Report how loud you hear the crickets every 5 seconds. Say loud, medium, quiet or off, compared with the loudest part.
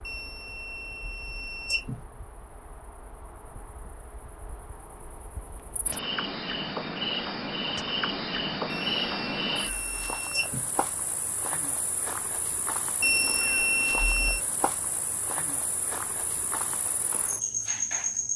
quiet, loud, medium, loud.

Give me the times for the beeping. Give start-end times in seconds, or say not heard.
0.1-2.0, 8.7-10.7, 13.0-14.4.